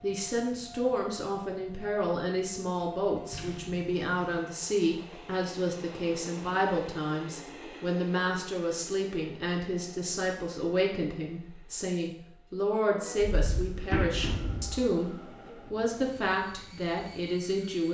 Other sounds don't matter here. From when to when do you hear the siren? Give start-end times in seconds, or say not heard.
not heard.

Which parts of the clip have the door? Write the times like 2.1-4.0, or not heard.
3.3-4.5, 13.2-14.9.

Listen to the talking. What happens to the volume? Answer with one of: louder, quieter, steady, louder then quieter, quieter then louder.
steady.